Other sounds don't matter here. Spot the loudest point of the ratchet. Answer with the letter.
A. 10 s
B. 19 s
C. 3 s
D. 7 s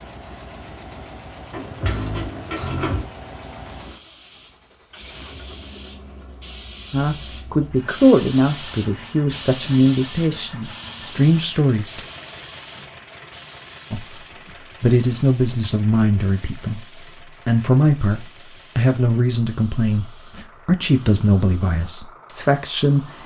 C.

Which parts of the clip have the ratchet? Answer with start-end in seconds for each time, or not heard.
1.5-3.0.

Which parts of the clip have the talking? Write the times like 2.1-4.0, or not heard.
6.9-12.1, 13.9-23.2.